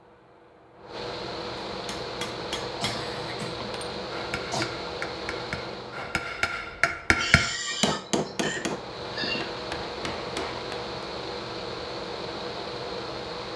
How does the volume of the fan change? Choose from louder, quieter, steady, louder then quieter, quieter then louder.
quieter then louder.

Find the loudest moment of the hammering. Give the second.
7 s.